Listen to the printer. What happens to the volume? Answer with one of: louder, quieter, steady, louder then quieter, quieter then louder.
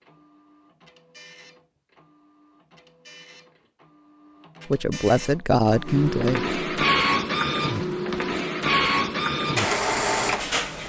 louder.